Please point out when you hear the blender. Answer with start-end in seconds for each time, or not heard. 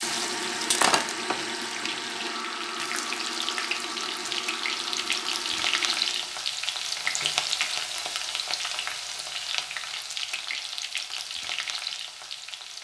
0.0-6.4.